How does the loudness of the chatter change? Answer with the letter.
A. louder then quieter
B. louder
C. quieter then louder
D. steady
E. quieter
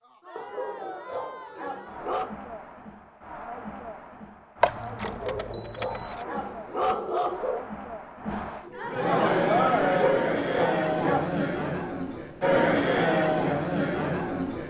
B.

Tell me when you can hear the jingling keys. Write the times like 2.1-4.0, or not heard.
4.6-6.2.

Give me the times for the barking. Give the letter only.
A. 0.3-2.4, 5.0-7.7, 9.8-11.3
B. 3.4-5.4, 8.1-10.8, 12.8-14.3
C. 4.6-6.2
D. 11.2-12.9
A.